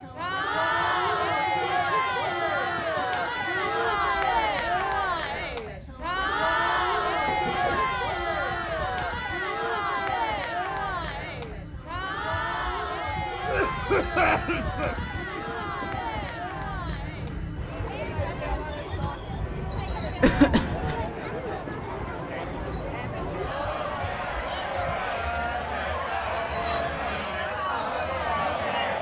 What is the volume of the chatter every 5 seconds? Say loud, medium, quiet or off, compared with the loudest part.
loud, loud, medium, medium, medium, loud.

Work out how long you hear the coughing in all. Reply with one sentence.
The coughing can be heard for 3 seconds in total.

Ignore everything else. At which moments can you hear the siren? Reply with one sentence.
The siren can't be heard in this clip.